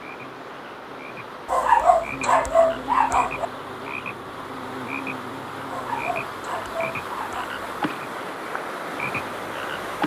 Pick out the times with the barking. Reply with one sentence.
You can hear the barking from 1.4 to 3.5 s and from 5.7 to 7.5 s.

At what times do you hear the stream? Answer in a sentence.
You can hear the stream from 0.0 to 10.0 s.